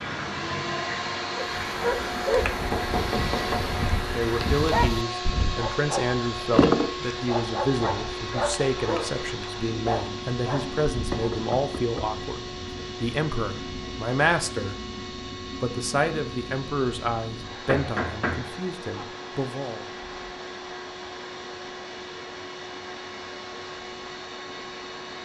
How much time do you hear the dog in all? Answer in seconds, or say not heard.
10 s.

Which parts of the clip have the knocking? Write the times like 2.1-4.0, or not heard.
2.5-3.6, 11.1-12.1, 17.6-19.1.